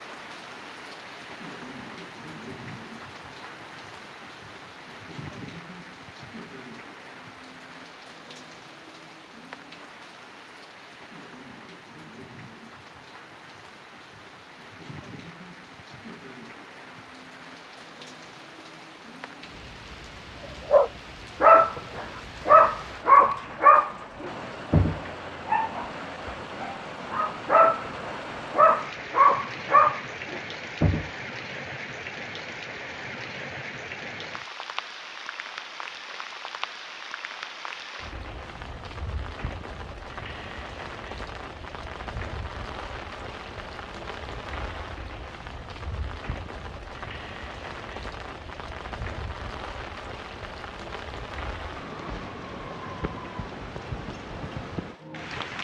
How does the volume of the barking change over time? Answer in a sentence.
The loudness of the barking goes down, then up.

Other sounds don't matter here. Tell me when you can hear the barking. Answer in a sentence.
The barking can be heard from 20.7 to 31.1 s.